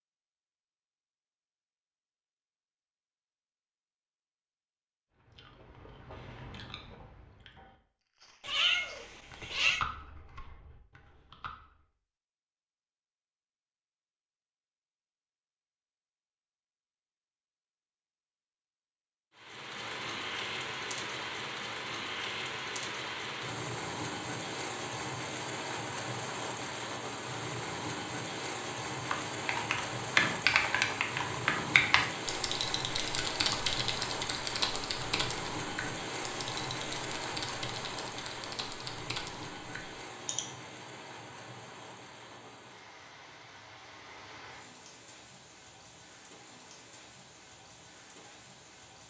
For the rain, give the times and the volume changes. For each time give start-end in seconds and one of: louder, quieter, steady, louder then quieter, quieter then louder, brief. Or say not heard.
19.4-49.0 quieter.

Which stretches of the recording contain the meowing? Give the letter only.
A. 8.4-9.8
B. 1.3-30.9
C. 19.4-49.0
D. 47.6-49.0
A.